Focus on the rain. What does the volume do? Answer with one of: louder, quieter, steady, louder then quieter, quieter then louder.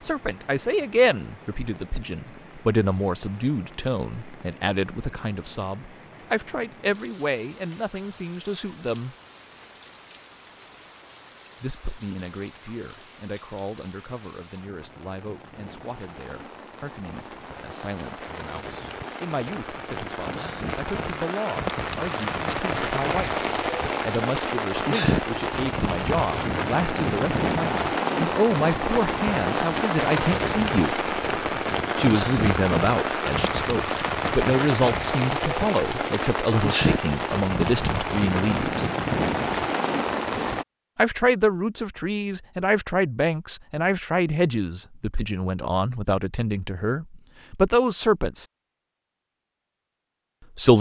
louder.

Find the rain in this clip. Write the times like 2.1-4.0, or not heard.
0.0-40.6.